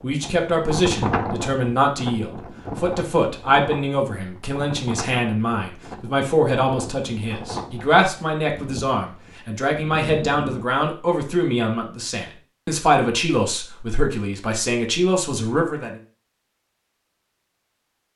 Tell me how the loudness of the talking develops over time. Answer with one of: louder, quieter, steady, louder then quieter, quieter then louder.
steady.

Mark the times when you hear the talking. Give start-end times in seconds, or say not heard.
0.0-15.9.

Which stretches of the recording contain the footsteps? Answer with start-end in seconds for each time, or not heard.
not heard.